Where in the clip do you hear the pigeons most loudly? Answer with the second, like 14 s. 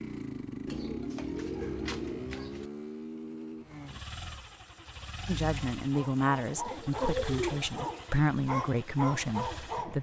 7 s.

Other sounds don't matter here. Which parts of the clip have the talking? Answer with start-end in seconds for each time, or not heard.
5.2-9.9.